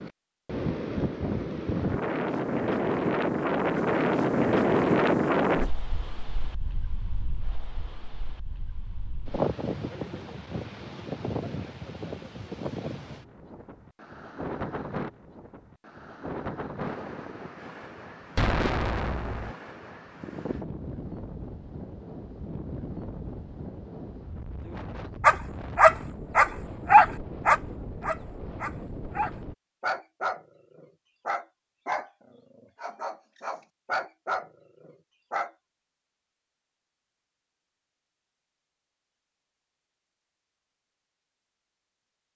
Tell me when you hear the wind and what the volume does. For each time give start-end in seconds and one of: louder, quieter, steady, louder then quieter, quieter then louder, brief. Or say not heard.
0.0-29.6 quieter.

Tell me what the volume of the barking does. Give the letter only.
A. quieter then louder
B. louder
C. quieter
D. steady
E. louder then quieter
C.